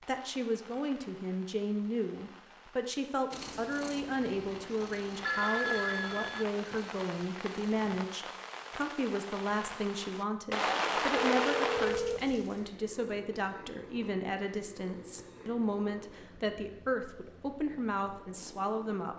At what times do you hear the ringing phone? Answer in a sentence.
You can hear the ringing phone from 4.8 to 6.5 s and from 11.3 to 12.2 s.